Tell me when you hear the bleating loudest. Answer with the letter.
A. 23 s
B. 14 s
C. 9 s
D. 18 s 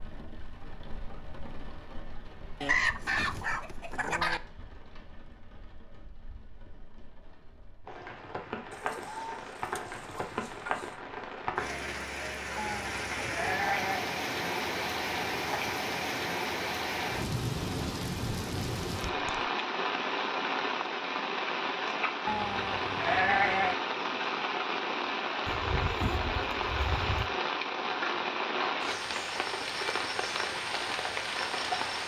A.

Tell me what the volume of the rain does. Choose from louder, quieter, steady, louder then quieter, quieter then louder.
louder.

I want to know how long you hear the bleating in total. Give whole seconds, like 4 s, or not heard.
3 s.